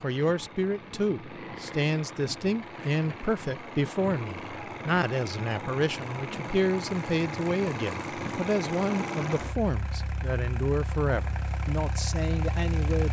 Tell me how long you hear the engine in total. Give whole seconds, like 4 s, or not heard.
13 s.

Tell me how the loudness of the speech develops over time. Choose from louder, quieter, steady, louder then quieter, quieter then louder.
steady.